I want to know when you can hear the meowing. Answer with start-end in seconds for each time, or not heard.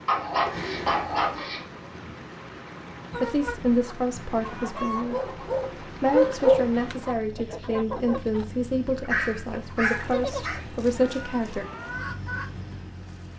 0.4-1.5.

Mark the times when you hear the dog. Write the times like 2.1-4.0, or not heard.
0.1-1.6, 5.1-6.7, 9.1-10.6.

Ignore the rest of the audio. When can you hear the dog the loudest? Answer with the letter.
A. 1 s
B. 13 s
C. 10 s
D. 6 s
D.